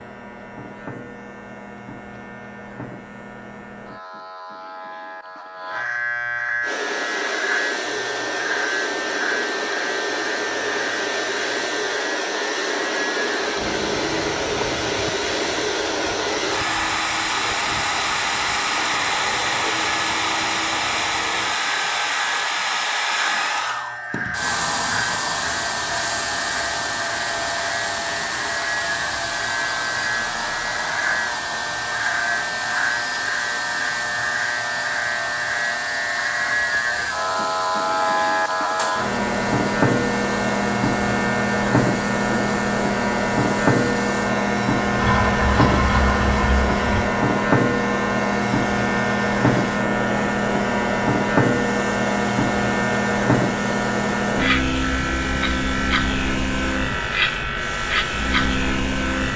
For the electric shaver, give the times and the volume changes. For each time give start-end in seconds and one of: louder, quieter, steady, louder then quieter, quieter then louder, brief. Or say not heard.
0.0-59.3 louder.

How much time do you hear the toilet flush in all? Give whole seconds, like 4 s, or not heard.
2 s.